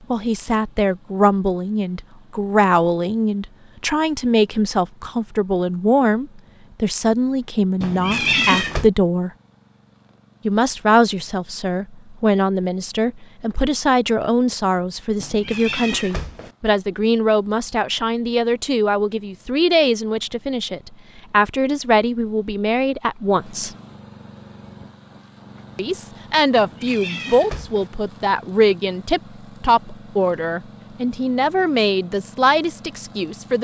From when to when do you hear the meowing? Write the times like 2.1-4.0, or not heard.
7.8-8.9, 15.2-16.5, 26.6-27.9.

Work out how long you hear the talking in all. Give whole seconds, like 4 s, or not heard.
30 s.